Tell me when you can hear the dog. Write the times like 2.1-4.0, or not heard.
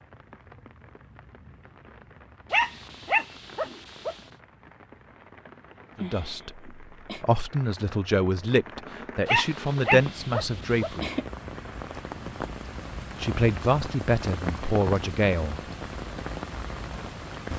2.5-4.2, 9.2-10.9.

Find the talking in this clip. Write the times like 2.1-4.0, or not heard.
6.0-11.1, 13.2-15.6.